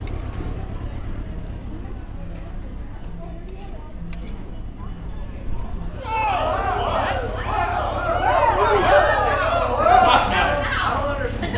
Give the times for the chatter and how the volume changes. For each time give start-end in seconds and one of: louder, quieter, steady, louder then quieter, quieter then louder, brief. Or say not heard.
0.0-11.5 louder.